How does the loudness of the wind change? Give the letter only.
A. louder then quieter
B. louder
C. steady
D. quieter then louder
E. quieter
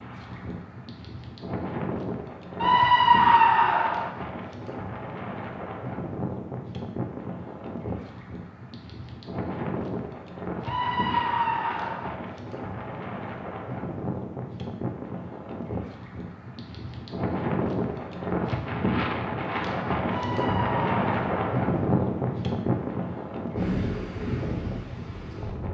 B.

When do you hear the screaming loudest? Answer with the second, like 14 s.
3 s.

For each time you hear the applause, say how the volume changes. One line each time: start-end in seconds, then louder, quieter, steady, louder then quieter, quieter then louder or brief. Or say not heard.
not heard.